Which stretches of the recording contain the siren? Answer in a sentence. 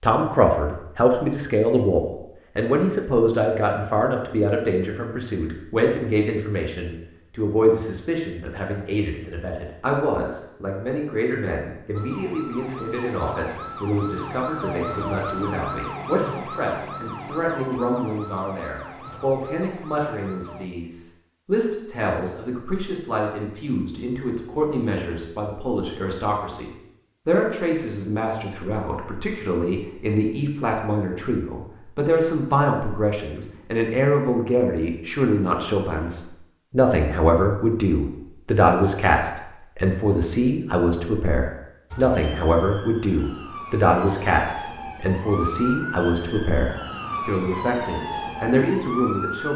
You can hear the siren from 11.9 to 20.7 s and from 41.9 to 49.5 s.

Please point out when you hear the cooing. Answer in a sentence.
The cooing can't be heard in this clip.